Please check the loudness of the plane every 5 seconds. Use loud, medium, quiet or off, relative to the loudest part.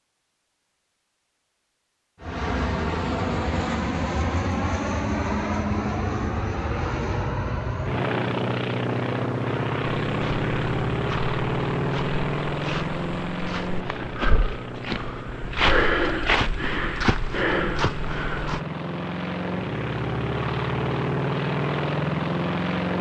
loud, loud, loud, medium, loud.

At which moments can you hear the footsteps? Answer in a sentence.
You can hear the footsteps from 10.1 to 18.6 s.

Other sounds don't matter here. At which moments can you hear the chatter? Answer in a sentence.
You can't hear the chatter here.